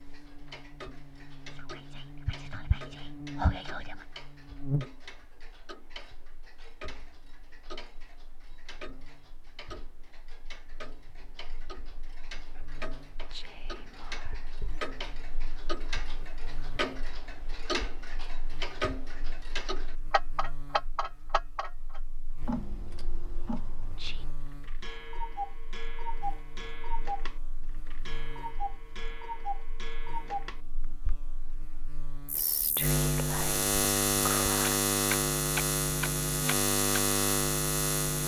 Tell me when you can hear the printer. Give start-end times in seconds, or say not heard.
not heard.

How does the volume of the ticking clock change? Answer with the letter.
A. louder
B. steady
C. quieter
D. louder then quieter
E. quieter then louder
A.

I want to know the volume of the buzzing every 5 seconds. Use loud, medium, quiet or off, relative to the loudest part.
quiet, quiet, quiet, quiet, quiet, quiet, loud, loud.